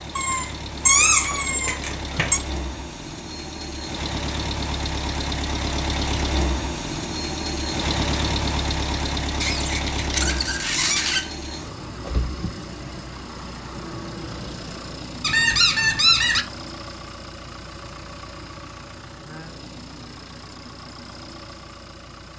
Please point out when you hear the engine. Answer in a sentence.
You can hear the engine from 0.0 to 22.3 s.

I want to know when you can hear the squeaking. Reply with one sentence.
The squeaking can be heard from 0.1 to 2.4 s, from 9.4 to 11.3 s and from 15.2 to 16.4 s.